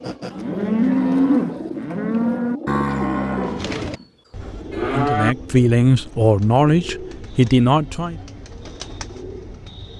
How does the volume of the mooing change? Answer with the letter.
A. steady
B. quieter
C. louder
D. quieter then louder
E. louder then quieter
B.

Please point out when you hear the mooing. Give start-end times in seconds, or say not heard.
0.0-5.3.